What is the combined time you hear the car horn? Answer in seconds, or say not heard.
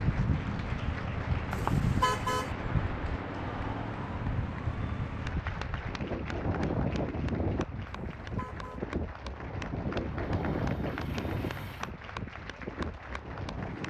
2 s.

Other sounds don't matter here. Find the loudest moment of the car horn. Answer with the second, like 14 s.
2 s.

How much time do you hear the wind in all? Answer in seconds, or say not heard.
14 s.